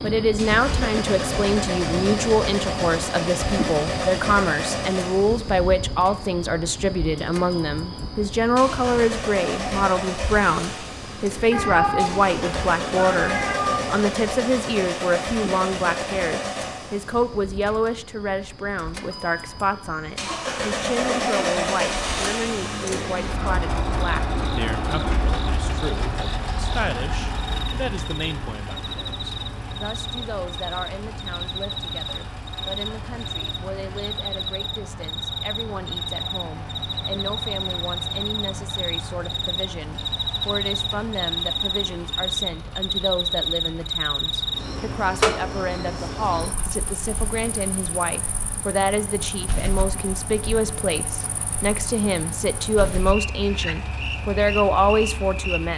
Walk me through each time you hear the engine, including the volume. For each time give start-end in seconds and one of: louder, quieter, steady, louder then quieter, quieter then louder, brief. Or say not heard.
0.0-55.7 quieter.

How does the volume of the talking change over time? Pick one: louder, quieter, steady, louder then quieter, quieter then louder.
quieter then louder.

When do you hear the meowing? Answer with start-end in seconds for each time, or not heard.
11.5-14.0.